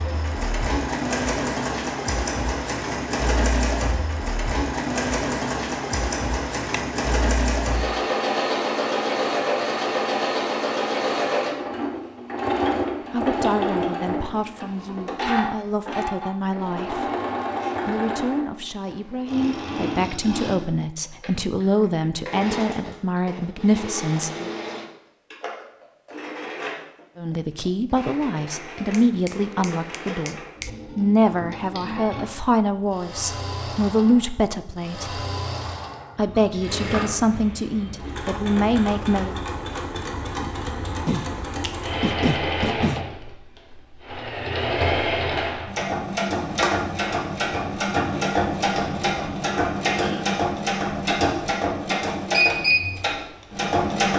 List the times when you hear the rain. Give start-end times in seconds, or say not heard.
not heard.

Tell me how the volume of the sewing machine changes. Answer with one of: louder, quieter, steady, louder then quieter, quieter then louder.
quieter then louder.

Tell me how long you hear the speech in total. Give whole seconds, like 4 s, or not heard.
22 s.